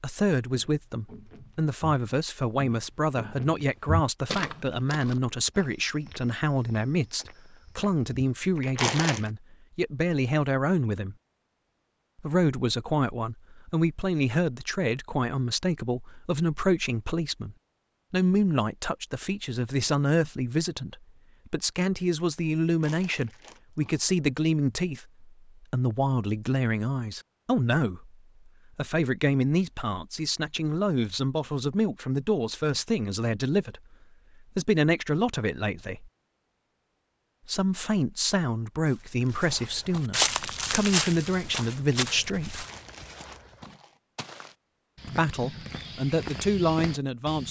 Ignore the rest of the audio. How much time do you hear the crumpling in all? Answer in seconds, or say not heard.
4 s.